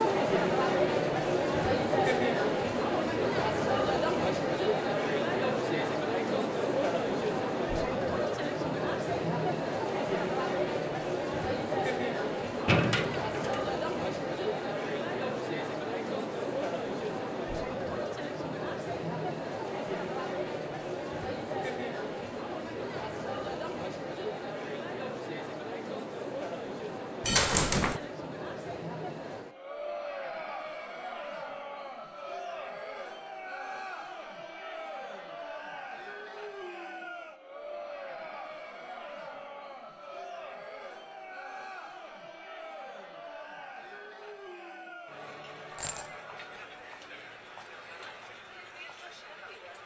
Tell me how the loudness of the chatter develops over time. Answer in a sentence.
The volume of the chatter goes down.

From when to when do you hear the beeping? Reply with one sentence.
You can't hear the beeping here.